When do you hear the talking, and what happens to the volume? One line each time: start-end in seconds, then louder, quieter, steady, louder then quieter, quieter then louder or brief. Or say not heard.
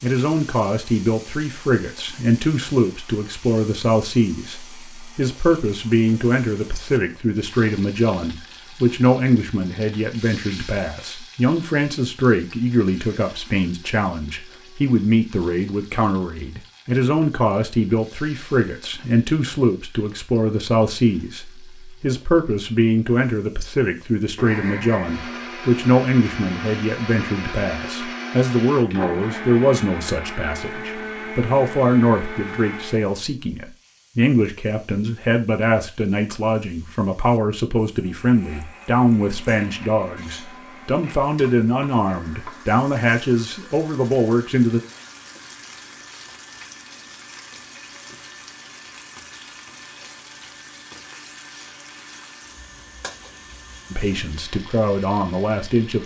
0.0-44.8 steady
53.9-56.0 brief.